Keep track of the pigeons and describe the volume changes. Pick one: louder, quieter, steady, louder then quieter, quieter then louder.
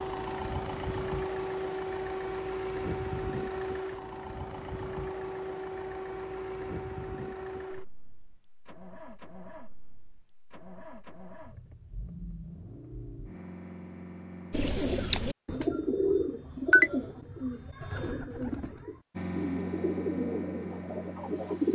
quieter.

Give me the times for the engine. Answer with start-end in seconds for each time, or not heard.
0.0-14.8, 19.1-21.6.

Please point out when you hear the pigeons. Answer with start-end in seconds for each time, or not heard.
14.5-21.6.